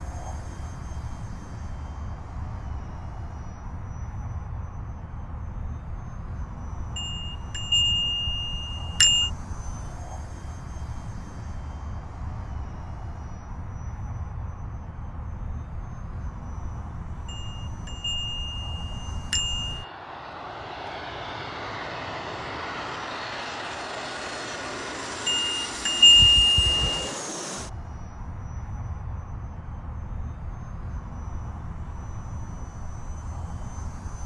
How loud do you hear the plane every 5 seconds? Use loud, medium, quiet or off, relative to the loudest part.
medium, medium, medium, medium, loud, loud, medium.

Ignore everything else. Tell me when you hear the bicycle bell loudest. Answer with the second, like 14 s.
26 s.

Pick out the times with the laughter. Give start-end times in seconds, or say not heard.
not heard.